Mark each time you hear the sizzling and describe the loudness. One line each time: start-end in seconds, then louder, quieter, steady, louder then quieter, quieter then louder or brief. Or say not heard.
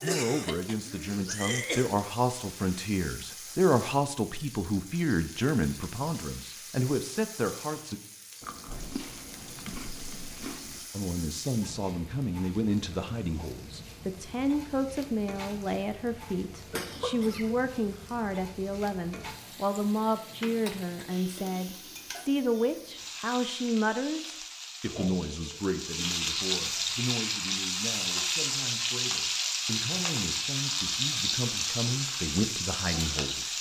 0.0-33.5 louder.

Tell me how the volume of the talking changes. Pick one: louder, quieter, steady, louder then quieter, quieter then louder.
quieter.